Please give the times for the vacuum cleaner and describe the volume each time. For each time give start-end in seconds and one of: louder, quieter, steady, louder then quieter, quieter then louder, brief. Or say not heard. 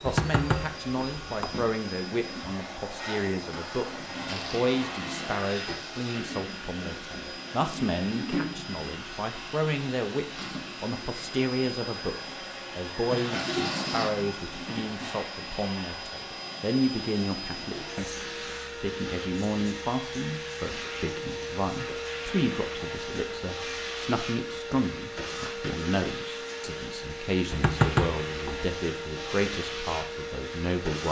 0.0-31.0 steady.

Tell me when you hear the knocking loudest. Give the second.
28 s.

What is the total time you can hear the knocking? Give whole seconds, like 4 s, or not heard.
3 s.